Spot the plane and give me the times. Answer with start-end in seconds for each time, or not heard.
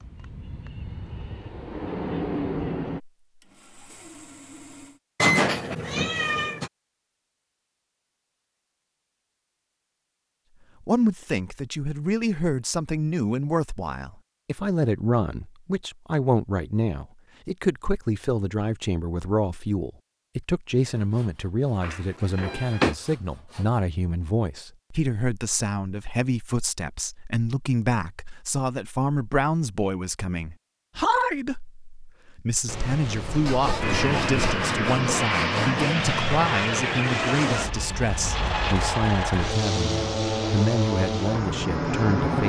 0.0-3.0, 33.8-42.4.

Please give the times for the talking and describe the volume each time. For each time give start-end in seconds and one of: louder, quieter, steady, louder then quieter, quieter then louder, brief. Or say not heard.
10.8-42.4 steady.